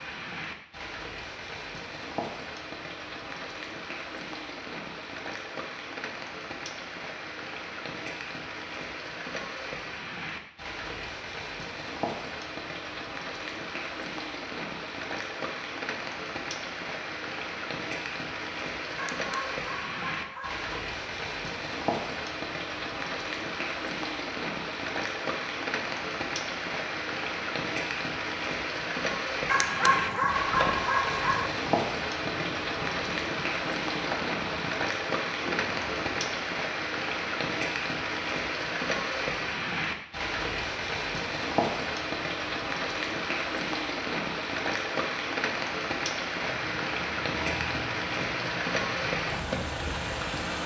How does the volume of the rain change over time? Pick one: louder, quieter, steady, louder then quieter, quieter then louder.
louder.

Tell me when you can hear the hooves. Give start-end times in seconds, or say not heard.
29.9-36.4, 46.4-50.6.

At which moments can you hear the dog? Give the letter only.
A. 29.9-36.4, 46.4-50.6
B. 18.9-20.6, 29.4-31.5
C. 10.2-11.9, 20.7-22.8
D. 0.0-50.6
B.